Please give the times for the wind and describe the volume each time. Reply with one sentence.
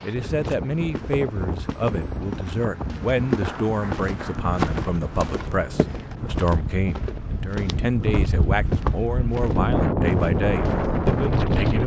The wind can be heard from 0.0 to 11.8 s, getting louder.